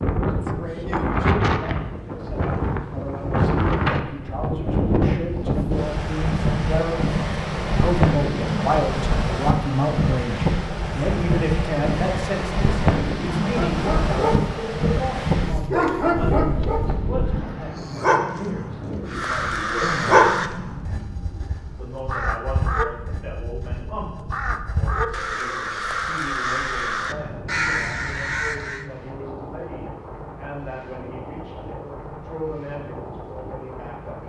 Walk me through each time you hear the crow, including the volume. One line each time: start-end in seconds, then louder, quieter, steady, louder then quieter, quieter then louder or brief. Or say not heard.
19.1-28.9 quieter then louder.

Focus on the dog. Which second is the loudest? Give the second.
20 s.